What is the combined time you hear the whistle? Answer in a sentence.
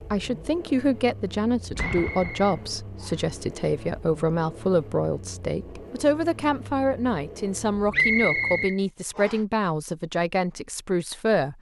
You can hear the whistle for 3 seconds altogether.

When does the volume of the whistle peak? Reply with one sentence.
The volume of the whistle peaks at 8 seconds.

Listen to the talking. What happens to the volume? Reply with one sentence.
The volume of the talking stays about the same.